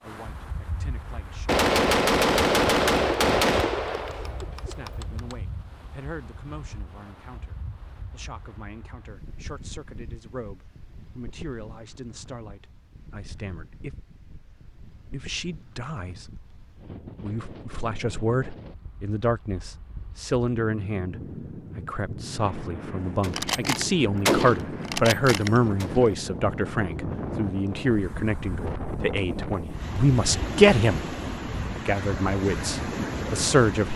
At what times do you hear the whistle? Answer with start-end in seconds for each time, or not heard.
not heard.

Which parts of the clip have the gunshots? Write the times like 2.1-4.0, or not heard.
1.4-5.3, 23.2-26.1.